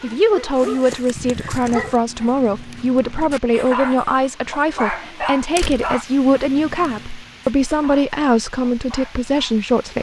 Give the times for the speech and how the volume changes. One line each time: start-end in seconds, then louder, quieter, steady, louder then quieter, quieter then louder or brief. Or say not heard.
0.0-9.9 steady.